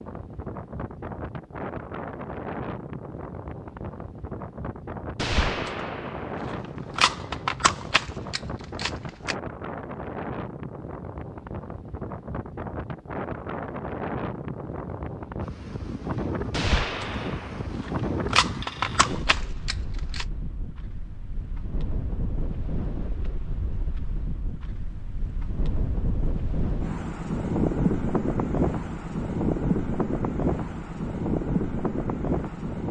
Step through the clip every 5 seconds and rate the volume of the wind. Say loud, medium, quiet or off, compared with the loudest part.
medium, medium, medium, medium, medium, loud, loud.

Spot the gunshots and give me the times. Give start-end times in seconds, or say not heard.
5.2-9.3, 16.5-20.2.